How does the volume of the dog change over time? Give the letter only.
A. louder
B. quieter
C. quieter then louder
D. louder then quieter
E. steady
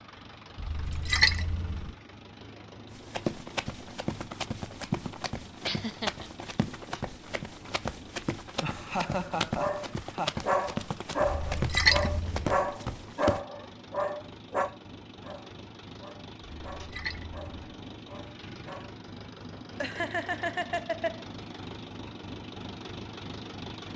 B.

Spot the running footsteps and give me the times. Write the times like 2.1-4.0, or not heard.
2.9-13.4.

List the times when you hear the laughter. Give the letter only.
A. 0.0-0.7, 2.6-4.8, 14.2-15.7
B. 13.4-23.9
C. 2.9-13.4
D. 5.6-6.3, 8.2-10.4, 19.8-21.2
D.